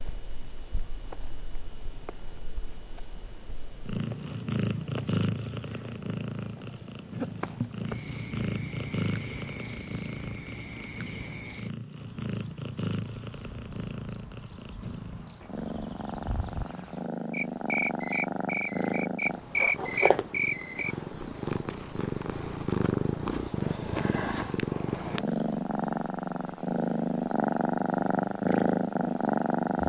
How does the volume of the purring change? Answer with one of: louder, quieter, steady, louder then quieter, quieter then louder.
louder.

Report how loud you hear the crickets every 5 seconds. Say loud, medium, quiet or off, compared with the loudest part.
quiet, quiet, quiet, loud, loud, medium.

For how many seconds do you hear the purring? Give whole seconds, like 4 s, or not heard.
30 s.